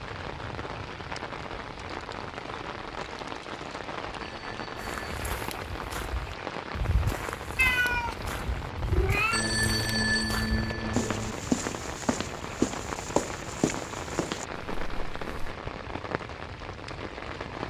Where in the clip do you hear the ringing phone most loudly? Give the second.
10 s.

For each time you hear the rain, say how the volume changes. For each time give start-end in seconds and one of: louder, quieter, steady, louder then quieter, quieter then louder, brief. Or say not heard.
0.0-17.6 steady.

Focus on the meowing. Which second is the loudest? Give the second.
8 s.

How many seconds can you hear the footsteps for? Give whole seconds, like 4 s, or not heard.
11 s.